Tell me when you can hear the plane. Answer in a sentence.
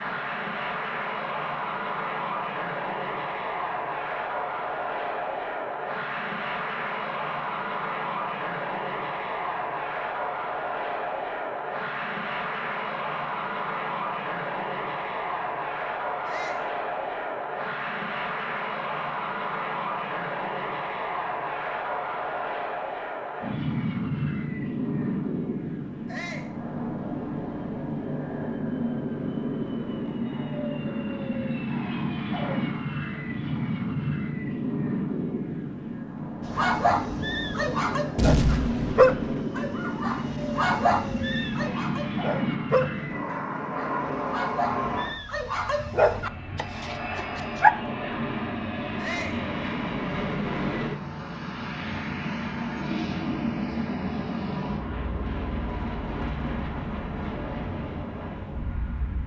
The plane can be heard from 0.0 to 59.2 s.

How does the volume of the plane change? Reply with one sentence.
The volume of the plane stays about the same.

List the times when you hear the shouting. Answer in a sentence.
You can hear the shouting from 16.2 to 16.7 s, from 26.1 to 26.6 s and from 49.0 to 49.5 s.